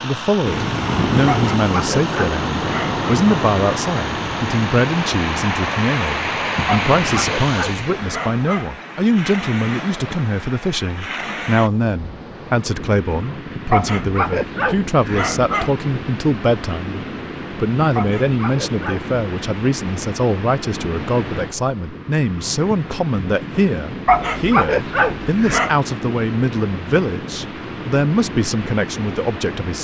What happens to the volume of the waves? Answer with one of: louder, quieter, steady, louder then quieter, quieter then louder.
quieter.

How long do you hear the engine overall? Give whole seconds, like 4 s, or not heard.
8 s.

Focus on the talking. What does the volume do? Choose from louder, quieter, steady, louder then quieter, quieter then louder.
steady.